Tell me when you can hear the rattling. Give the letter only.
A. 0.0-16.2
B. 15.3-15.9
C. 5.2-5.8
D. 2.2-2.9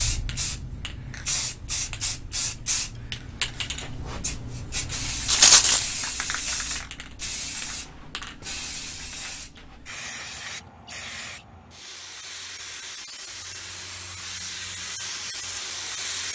C.